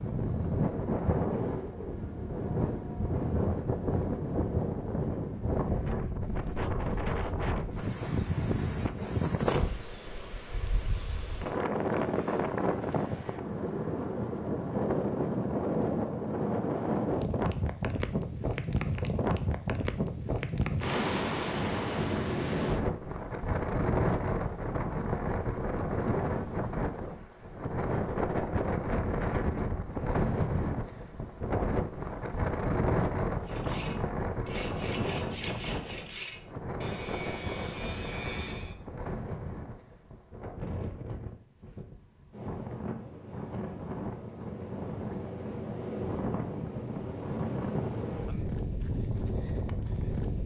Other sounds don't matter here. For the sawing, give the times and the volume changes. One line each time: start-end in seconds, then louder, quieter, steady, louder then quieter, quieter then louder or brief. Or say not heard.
33.5-38.8 steady.